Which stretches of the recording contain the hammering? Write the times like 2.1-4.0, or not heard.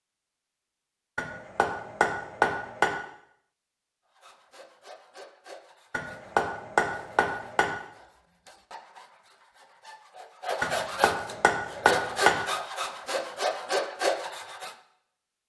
1.1-2.9, 5.9-7.7, 10.6-12.3.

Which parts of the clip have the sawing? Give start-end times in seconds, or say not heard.
4.1-14.8.